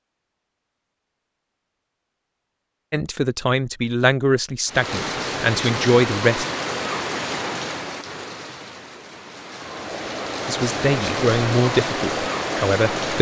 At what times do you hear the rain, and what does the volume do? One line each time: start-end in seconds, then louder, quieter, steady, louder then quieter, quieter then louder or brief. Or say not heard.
4.7-13.1 quieter then louder.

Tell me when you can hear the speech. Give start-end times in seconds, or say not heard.
2.9-6.5, 10.4-13.1.